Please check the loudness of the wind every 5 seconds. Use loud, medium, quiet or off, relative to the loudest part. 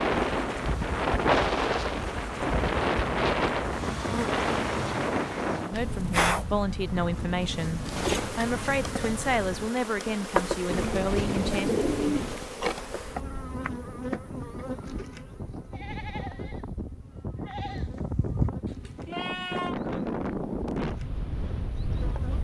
loud, medium, quiet, medium, medium.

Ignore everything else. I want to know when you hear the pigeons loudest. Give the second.
12 s.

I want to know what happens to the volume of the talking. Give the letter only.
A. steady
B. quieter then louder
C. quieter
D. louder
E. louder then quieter
A.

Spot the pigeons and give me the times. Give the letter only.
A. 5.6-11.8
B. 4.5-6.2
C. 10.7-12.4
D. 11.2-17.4
C.